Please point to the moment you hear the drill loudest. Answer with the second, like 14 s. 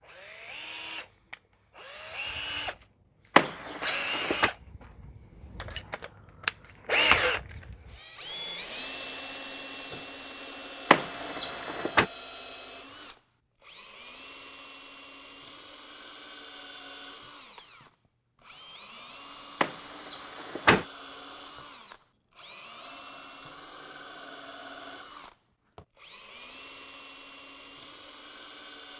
7 s.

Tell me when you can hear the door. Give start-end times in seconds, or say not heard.
3.4-4.5, 10.9-12.1, 19.6-20.9.